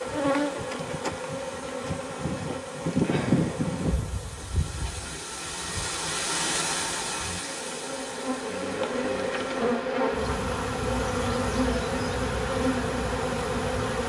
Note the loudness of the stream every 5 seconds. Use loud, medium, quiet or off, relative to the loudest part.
quiet, loud, off.